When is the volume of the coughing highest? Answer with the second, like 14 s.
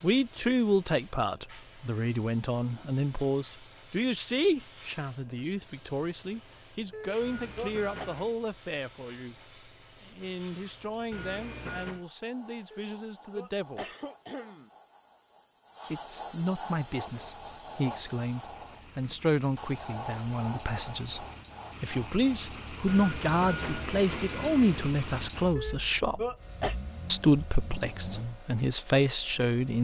26 s.